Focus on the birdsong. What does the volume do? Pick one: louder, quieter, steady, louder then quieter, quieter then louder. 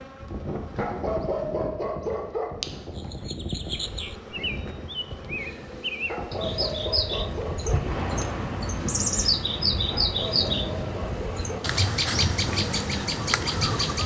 louder.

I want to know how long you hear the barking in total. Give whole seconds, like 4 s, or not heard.
5 s.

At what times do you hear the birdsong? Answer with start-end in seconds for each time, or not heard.
3.0-14.0.